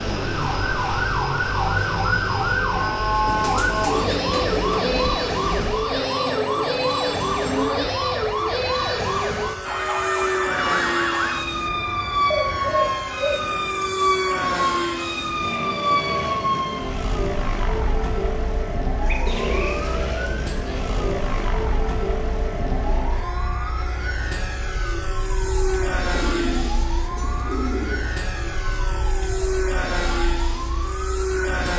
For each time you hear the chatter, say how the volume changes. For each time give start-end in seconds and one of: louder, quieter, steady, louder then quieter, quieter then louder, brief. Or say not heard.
not heard.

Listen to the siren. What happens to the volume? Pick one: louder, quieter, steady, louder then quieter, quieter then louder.
quieter.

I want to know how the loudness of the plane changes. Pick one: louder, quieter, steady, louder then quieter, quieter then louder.
steady.